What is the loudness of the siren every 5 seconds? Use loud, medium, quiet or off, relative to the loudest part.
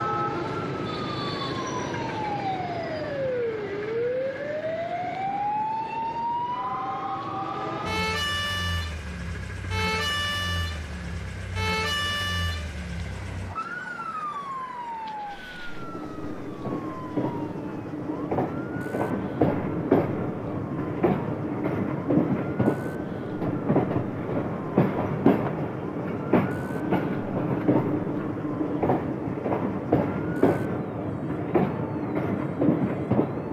loud, loud, loud, quiet, quiet, quiet, quiet.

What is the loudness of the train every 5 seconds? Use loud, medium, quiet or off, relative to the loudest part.
quiet, quiet, quiet, loud, loud, loud, loud.